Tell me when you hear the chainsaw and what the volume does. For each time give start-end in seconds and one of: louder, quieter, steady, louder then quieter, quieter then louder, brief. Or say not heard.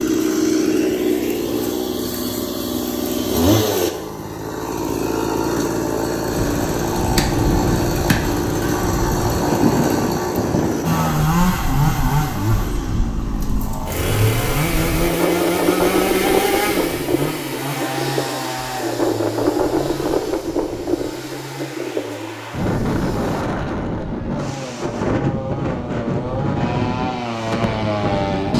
0.0-28.5 quieter.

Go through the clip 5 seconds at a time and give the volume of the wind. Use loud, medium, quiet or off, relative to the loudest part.
off, loud, medium, loud, loud, loud.